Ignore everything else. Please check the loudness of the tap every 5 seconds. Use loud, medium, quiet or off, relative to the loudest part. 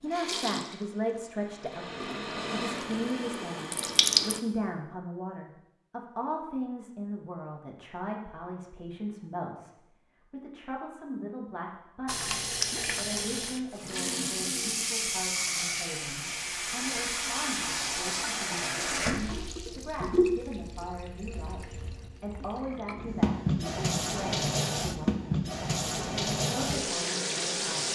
loud, off, loud, loud, loud, loud.